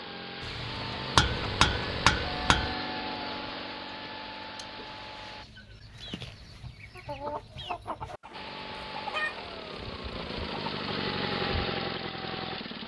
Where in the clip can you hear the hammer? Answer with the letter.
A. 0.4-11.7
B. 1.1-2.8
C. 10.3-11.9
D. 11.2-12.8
B.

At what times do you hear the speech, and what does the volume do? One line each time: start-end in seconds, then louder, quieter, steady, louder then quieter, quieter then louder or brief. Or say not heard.
not heard.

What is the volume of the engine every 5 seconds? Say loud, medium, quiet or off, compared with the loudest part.
loud, medium, loud.